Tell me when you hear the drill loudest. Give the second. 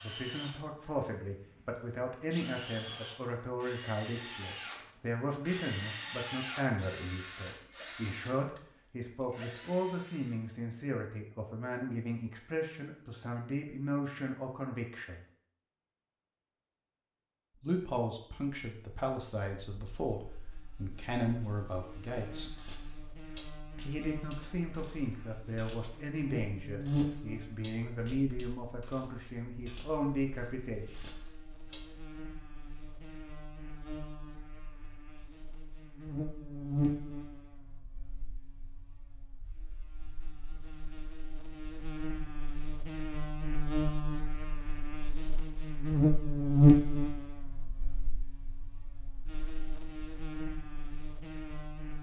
6 s.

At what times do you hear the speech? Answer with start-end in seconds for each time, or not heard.
0.0-15.2, 17.6-22.6, 23.9-31.1.